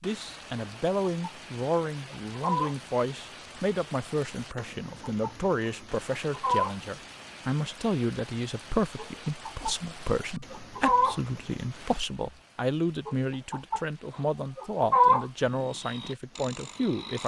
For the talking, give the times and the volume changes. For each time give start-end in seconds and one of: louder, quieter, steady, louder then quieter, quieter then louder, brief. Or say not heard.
0.0-17.2 steady.